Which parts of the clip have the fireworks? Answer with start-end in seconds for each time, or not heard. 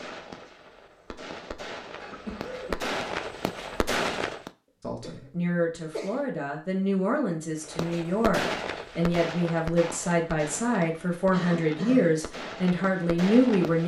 0.0-4.5, 7.6-13.8.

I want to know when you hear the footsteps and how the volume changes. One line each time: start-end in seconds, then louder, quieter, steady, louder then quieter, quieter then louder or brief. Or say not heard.
not heard.